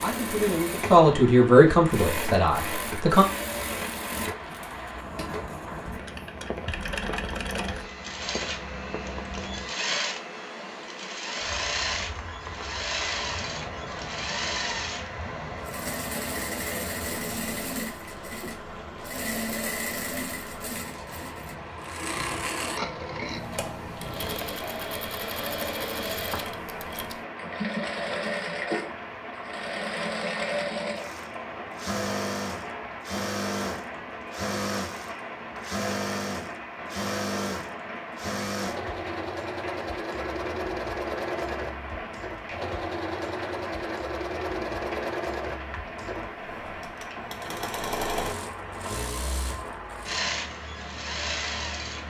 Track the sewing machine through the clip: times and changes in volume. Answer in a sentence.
You can hear the sewing machine from 0.0 to 52.0 s, at a steady volume.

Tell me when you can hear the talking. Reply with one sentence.
The talking can be heard from 0.0 to 3.2 s.